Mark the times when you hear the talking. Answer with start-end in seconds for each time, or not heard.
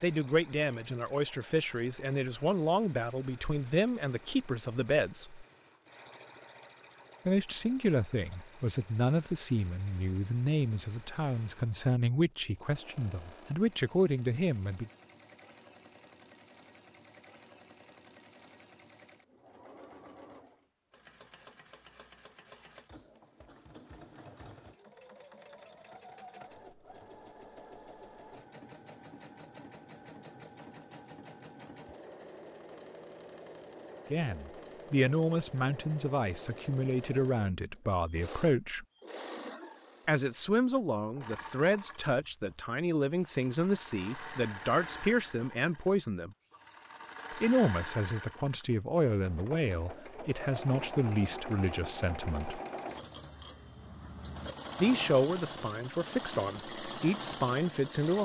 0.0-5.5, 7.2-14.9, 34.1-38.9, 40.0-46.3, 47.3-52.6, 54.8-58.2.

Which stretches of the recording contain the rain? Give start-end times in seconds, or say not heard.
not heard.